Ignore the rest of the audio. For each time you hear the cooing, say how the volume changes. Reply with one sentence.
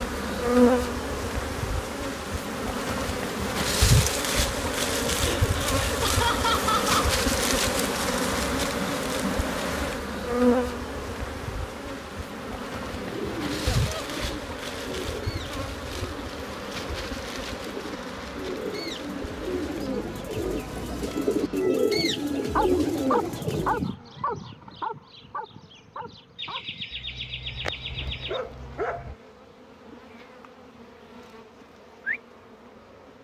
The cooing can be heard from 12.8 to 23.9 s, getting quieter then louder.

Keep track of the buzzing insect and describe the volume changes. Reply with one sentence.
The loudness of the buzzing insect goes down.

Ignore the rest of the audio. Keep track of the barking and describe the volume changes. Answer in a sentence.
The volume of the barking goes down, then up.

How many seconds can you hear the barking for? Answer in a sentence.
You can hear the barking for 7 seconds altogether.